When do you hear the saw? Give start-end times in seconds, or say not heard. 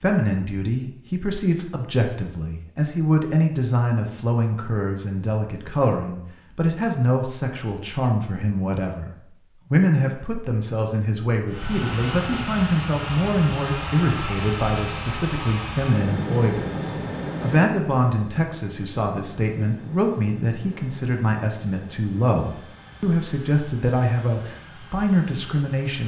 not heard.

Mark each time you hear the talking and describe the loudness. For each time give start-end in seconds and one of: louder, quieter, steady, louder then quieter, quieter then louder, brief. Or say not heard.
0.0-26.0 steady.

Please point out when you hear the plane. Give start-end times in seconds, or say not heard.
11.4-26.0.